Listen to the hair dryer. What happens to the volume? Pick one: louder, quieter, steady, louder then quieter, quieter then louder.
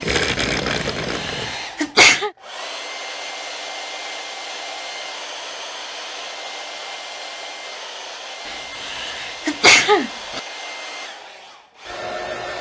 steady.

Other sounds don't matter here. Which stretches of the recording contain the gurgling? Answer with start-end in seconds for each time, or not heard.
0.0-1.6.